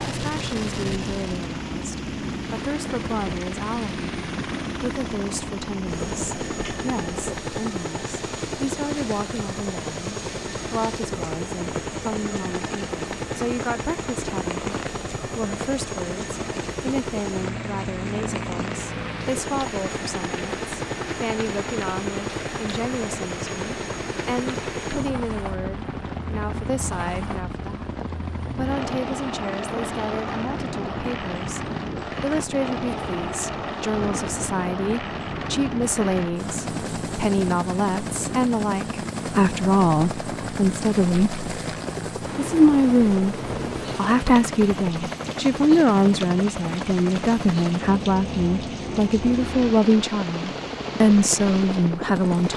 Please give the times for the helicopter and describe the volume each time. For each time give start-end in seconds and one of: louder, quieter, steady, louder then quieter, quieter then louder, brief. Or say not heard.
0.0-52.5 steady.